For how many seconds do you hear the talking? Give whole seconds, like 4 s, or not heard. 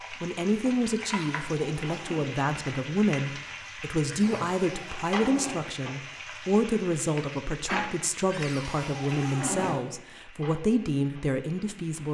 12 s.